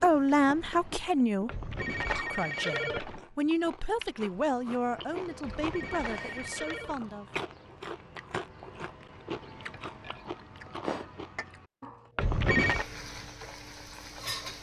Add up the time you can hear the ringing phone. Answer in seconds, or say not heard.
4 s.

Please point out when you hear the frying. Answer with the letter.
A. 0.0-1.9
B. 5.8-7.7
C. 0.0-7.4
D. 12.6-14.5
D.